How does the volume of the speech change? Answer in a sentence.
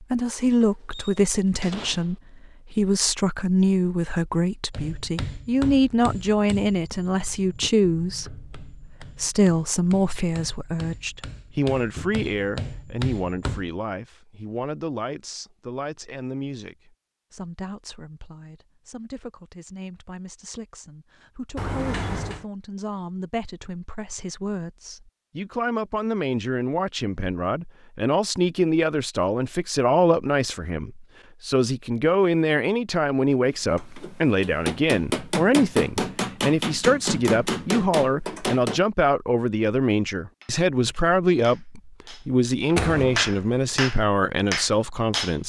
The volume of the speech goes down, then up.